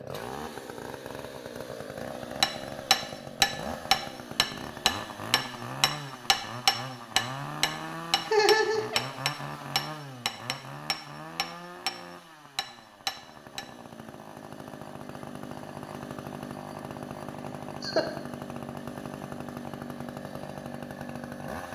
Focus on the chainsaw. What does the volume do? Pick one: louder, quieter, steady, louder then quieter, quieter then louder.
steady.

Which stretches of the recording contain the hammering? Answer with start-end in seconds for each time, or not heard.
2.4-11.9, 12.6-13.7.